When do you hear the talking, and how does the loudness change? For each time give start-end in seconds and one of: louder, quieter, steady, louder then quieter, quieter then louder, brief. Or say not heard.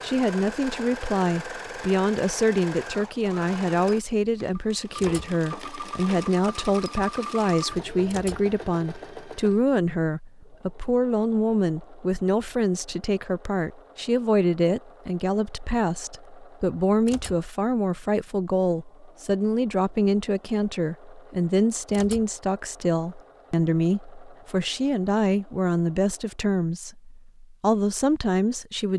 0.0-28.9 steady.